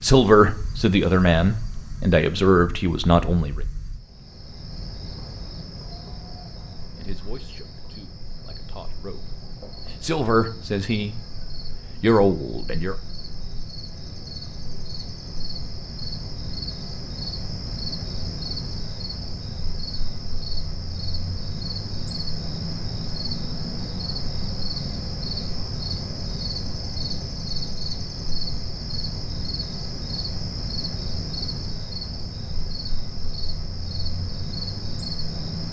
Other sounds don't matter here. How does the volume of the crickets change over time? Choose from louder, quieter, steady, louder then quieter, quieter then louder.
louder.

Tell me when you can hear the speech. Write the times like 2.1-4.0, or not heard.
0.0-3.6, 7.0-11.2, 12.0-12.9.